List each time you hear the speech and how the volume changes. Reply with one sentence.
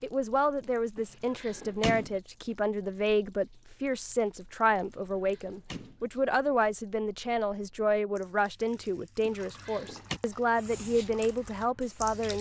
You can hear the speech from 0.0 to 12.3 s, at a steady volume.